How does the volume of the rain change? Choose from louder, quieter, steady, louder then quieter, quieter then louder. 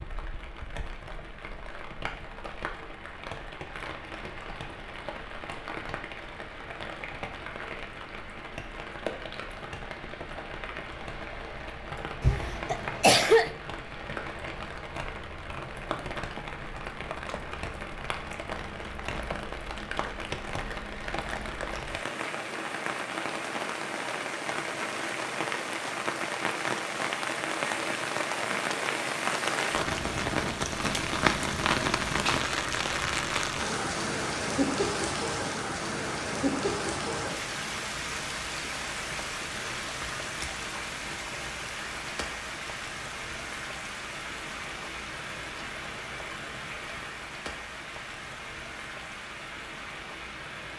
louder then quieter.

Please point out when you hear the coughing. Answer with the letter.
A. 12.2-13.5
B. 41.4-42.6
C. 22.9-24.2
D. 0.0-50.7
A.